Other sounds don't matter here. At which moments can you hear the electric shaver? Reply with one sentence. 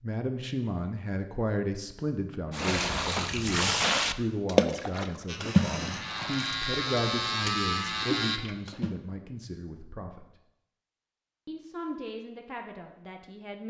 The electric shaver can be heard from 5.2 to 8.4 s.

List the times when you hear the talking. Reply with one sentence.
The talking can be heard from 0.0 to 10.2 s and from 11.4 to 13.6 s.